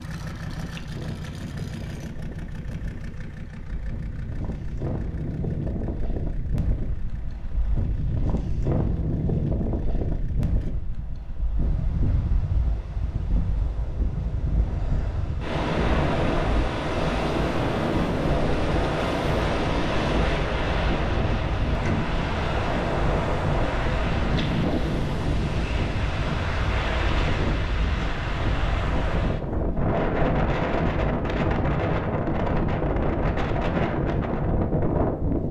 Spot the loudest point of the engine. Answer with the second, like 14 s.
1 s.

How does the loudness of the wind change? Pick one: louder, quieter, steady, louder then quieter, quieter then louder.
louder.